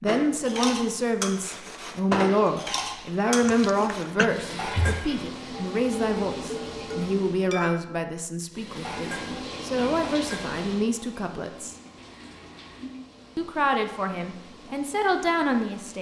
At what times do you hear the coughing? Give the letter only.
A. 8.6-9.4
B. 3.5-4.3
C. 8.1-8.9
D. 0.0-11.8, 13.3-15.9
B.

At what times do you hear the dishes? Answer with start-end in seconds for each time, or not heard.
0.1-10.6.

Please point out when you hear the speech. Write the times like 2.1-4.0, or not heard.
0.0-11.8, 13.3-15.9.